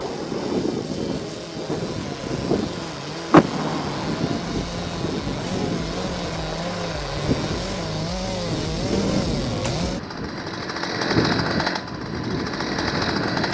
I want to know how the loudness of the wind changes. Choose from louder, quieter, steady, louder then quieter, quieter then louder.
steady.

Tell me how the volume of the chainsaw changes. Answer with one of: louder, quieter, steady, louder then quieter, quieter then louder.
louder.